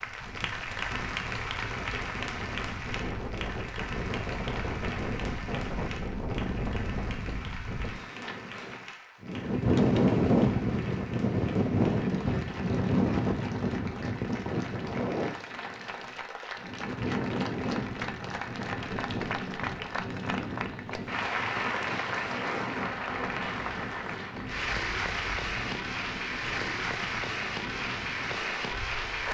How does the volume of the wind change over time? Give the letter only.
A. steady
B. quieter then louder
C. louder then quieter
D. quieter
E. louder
C.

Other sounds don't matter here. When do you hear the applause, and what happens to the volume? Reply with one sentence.
You can hear the applause from 0.0 to 29.2 s, getting quieter then louder.